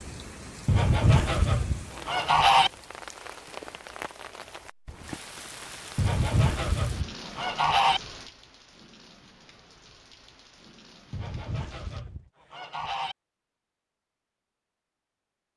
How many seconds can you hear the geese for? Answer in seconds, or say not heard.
6 s.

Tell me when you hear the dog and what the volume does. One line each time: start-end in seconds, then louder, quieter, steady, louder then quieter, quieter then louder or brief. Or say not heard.
not heard.